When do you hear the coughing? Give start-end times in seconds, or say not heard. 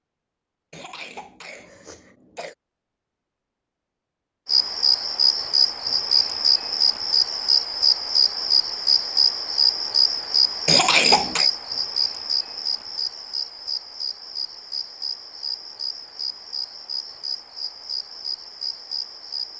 0.7-2.5, 10.7-11.5.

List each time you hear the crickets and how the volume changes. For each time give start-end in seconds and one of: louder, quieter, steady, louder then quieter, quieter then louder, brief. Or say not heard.
4.5-19.5 quieter.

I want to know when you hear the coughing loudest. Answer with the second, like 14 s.
11 s.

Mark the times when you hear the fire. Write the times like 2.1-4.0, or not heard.
not heard.